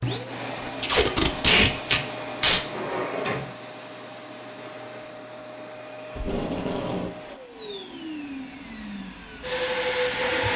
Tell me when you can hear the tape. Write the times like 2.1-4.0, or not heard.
0.8-2.6, 6.2-7.1.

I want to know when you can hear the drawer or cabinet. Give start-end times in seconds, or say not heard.
2.5-3.5.